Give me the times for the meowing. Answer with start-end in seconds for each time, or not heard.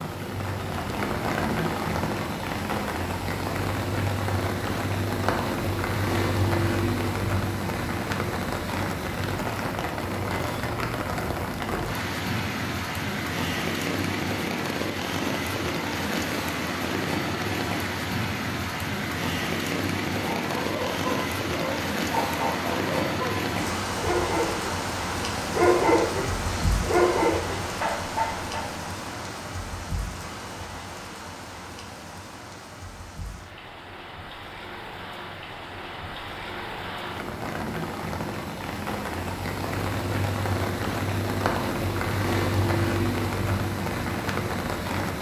not heard.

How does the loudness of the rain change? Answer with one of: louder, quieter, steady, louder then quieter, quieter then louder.
quieter then louder.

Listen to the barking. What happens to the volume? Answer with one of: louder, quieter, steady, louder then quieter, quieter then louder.
louder then quieter.